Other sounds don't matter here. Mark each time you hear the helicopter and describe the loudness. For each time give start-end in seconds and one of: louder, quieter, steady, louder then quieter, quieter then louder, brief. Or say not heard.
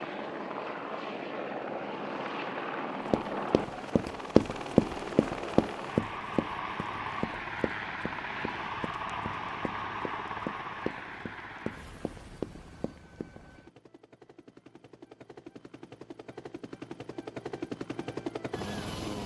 0.0-19.2 quieter then louder.